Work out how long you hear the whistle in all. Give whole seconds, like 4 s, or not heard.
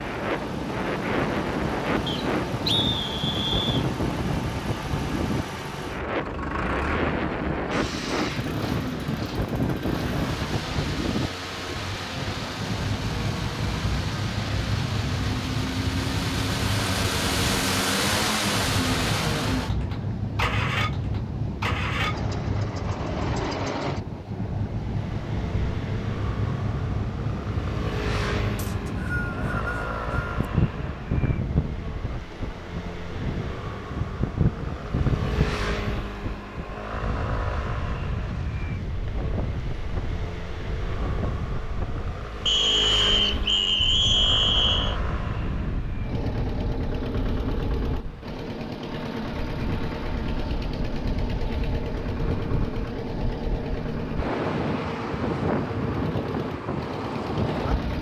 6 s.